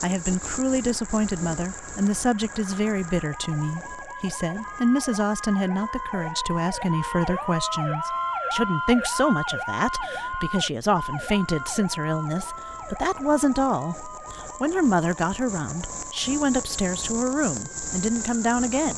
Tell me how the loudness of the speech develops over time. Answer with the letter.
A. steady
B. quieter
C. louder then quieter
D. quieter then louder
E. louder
A.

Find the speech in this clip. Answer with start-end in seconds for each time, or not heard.
0.0-18.9.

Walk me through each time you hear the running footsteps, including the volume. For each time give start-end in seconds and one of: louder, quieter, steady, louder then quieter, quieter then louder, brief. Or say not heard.
not heard.